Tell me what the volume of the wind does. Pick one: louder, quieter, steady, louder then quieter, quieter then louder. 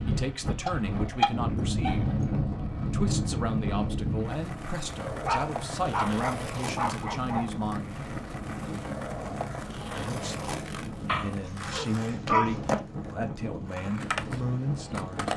quieter.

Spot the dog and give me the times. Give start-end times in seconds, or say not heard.
0.7-1.9, 5.2-7.5, 11.1-12.6.